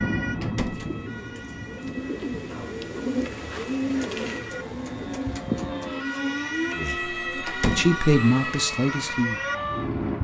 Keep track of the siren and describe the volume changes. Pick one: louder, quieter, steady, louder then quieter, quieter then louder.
louder.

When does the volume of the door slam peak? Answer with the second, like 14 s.
8 s.